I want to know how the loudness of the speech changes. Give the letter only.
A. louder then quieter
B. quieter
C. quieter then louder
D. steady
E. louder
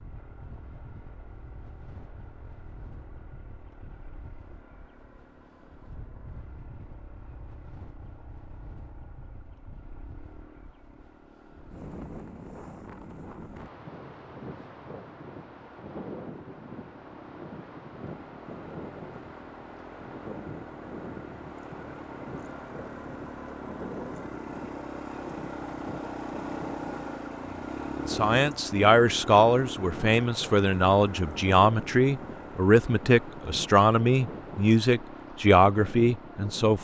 D.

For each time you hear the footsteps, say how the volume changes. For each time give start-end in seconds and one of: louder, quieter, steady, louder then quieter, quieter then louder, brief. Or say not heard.
not heard.